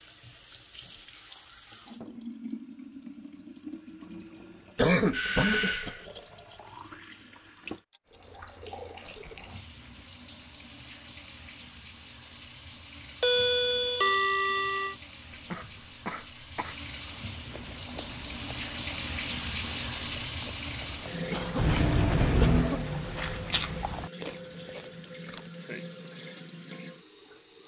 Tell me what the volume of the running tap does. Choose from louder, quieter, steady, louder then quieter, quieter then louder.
louder then quieter.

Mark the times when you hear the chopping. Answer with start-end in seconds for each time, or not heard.
not heard.